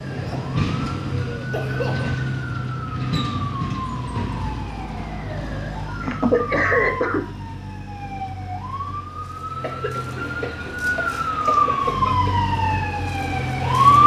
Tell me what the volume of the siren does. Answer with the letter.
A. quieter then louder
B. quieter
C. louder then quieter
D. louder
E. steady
D.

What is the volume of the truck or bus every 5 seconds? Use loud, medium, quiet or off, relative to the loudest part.
loud, medium, loud.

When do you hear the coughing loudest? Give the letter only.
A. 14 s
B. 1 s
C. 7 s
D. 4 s
C.